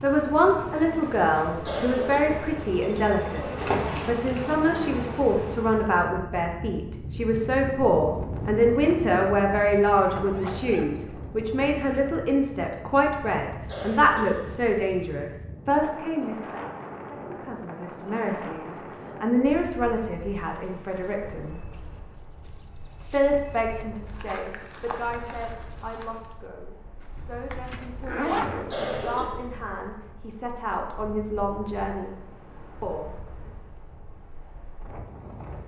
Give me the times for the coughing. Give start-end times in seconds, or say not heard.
1.6-2.3, 13.7-15.2, 28.6-29.3.